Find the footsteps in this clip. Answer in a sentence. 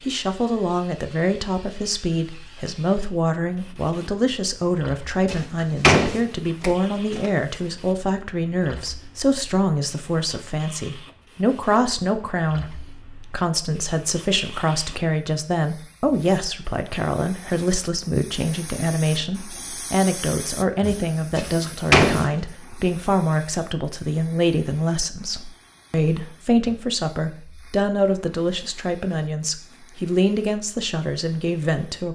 You can't hear the footsteps here.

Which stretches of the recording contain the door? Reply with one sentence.
The door can be heard from 5.2 to 7.3 s and from 21.4 to 22.3 s.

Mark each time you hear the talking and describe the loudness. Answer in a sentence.
The talking can be heard from 0.0 to 32.0 s, at a steady volume.